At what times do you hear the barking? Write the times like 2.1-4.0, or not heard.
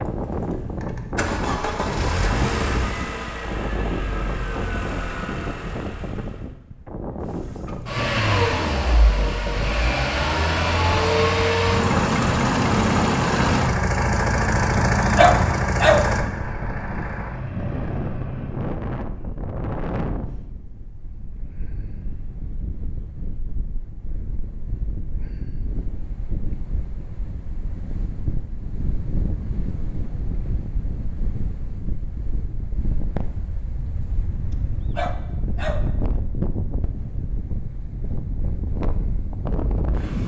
15.2-16.1, 34.9-35.9.